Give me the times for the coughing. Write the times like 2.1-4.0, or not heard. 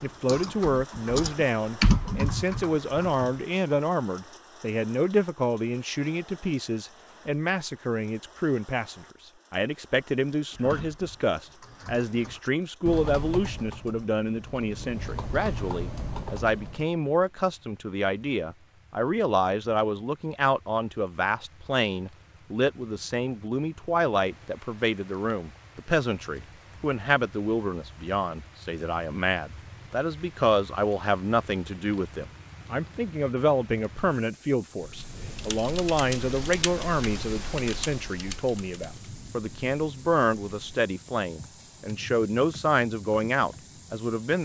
not heard.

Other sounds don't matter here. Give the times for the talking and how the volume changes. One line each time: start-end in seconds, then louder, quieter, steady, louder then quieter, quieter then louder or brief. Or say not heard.
0.0-44.4 steady.